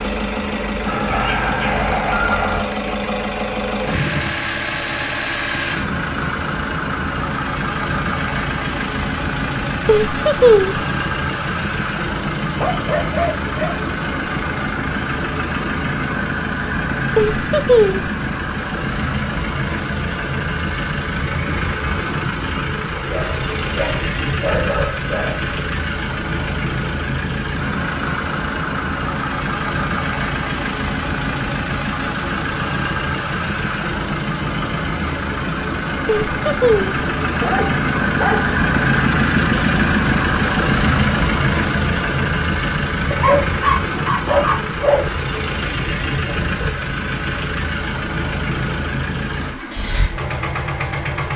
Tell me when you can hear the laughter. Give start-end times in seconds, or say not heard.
9.8-10.8, 17.1-18.1, 36.2-37.0.